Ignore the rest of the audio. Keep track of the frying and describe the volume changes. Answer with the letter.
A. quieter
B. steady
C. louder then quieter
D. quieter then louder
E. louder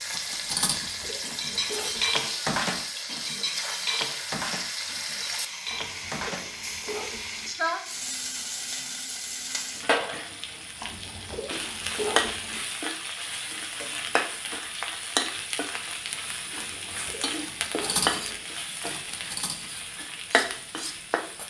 B.